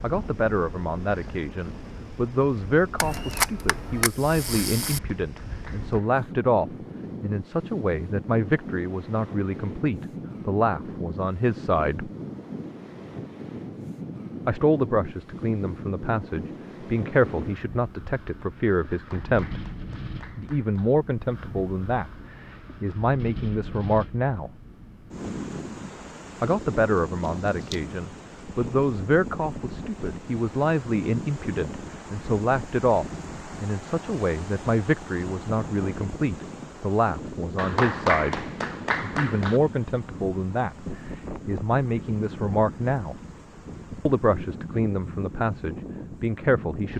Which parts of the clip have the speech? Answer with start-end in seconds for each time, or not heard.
0.0-12.1, 14.4-19.6, 20.4-24.5, 26.4-43.1, 44.0-46.9.